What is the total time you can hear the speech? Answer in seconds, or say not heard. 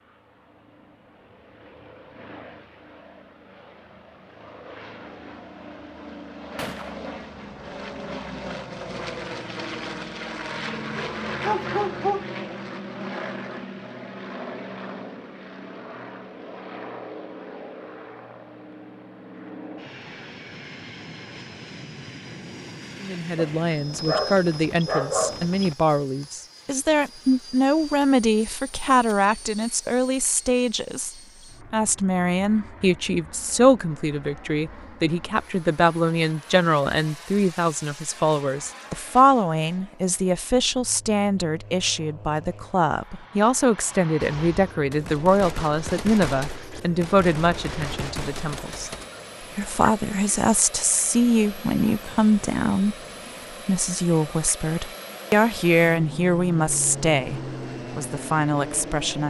34 s.